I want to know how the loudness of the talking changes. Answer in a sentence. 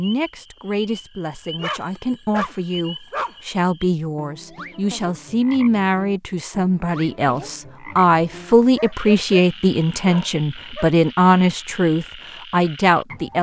The volume of the talking goes up.